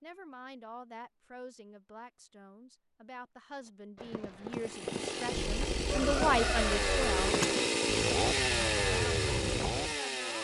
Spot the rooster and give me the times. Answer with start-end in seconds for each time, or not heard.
5.3-7.3.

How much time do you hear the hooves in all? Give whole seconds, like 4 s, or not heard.
6 s.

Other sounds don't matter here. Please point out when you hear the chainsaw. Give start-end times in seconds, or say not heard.
4.5-10.3.